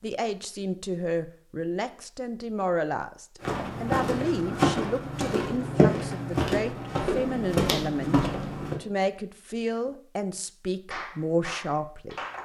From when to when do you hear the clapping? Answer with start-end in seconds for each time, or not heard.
10.9-12.4.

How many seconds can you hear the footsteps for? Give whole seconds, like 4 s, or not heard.
5 s.